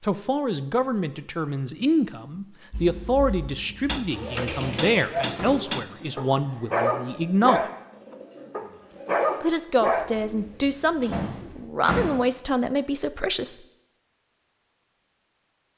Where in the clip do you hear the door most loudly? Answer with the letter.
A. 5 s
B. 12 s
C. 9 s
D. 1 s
B.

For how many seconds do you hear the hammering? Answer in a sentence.
The hammering can be heard for 2 seconds in total.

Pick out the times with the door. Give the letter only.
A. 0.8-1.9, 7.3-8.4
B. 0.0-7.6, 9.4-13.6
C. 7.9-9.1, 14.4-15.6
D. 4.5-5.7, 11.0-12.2
D.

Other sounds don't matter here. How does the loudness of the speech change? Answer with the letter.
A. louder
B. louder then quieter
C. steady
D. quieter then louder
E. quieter
C.